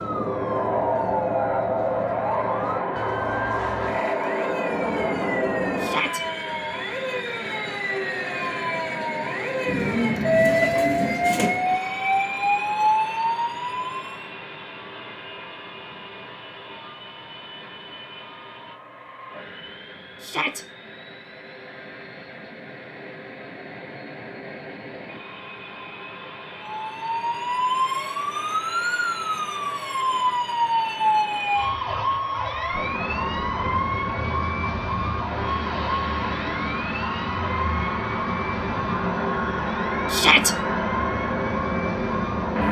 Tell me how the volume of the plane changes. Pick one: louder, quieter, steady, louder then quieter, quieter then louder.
quieter then louder.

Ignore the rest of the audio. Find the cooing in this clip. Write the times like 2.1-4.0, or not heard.
9.7-11.6.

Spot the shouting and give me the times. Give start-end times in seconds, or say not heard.
5.8-6.2, 20.2-20.6, 40.1-40.5.